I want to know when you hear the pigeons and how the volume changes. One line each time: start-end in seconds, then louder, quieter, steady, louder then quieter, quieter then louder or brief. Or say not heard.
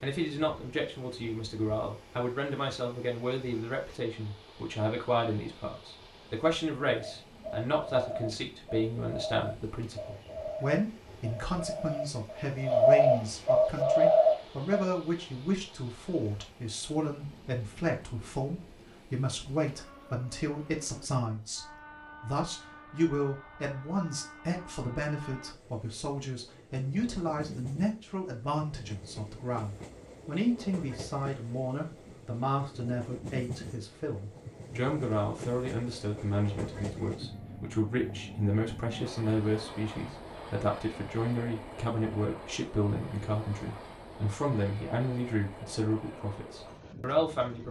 7.0-14.9 louder.